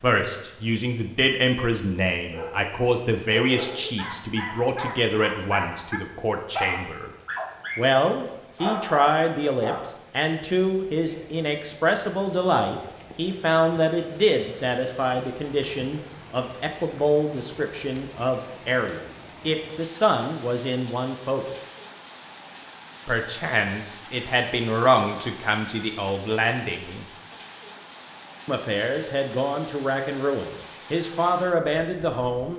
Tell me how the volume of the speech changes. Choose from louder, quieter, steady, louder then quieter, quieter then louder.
steady.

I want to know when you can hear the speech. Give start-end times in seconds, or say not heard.
0.0-7.1, 7.8-21.6, 23.1-27.1, 28.4-32.5.